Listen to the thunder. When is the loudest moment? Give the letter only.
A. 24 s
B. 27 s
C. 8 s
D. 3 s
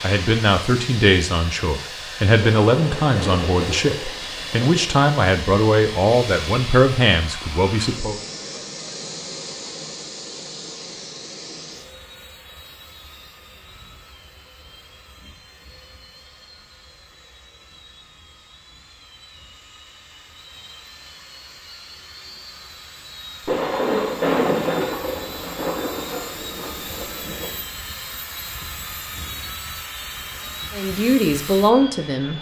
A.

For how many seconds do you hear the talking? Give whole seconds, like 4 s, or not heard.
10 s.